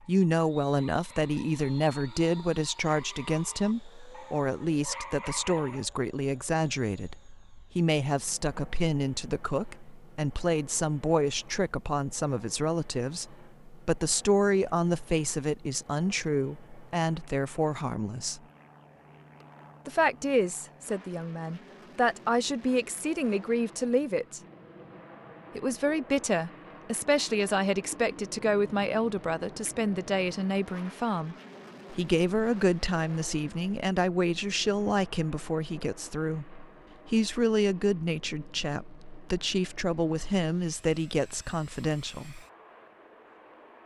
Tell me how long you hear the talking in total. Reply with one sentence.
You can hear the talking for 40 seconds altogether.